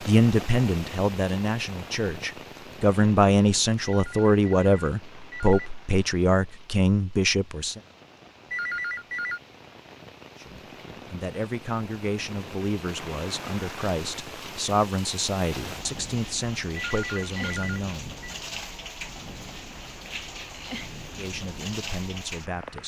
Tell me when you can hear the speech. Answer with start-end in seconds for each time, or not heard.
0.0-7.8, 10.3-18.1, 21.1-22.8.